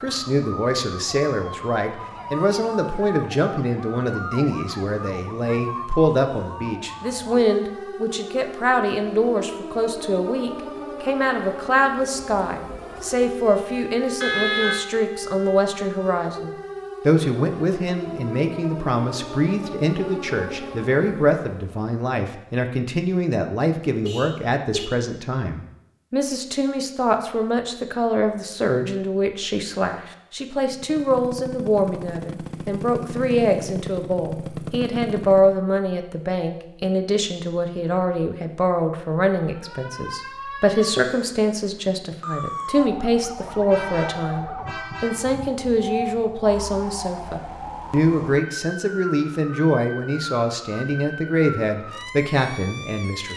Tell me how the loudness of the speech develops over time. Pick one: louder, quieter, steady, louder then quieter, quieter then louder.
steady.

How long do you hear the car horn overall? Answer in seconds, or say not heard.
3 s.